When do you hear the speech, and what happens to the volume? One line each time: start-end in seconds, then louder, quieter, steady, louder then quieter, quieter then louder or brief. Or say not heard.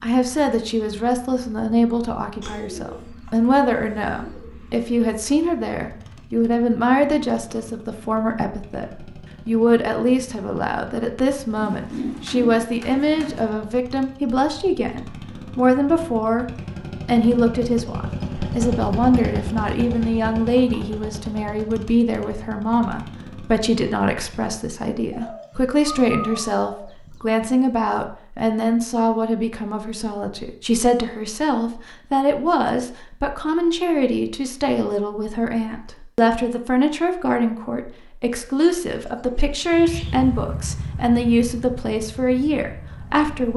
0.0-16.4 steady
17.1-43.5 steady.